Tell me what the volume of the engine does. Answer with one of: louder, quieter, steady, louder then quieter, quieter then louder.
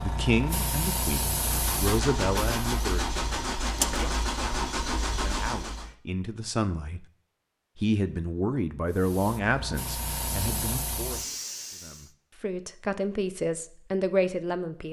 steady.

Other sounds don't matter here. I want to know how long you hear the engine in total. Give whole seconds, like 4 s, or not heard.
5 s.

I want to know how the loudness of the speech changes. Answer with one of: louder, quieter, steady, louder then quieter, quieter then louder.
quieter then louder.